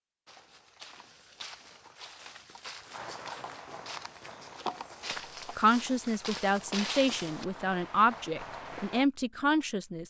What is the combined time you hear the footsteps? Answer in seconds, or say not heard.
7 s.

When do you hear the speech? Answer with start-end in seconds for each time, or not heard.
5.5-10.0.